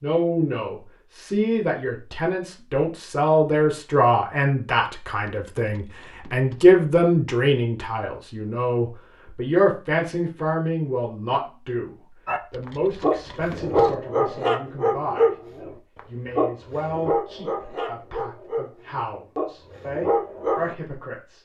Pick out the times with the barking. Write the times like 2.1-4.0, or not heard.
12.2-20.8.